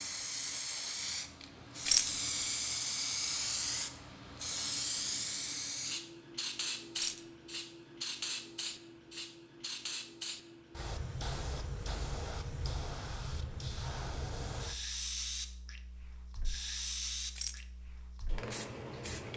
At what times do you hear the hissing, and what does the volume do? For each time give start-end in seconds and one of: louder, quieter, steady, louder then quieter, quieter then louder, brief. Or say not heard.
0.0-19.3 quieter.